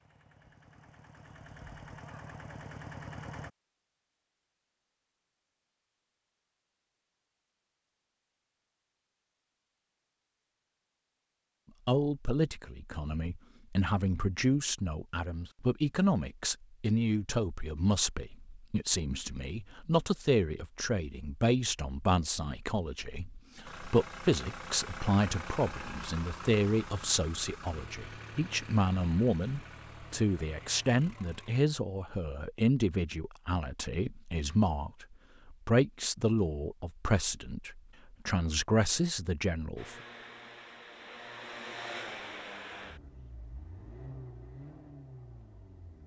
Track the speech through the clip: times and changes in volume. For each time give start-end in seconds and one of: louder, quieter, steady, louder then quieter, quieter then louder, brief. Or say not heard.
11.8-40.0 steady.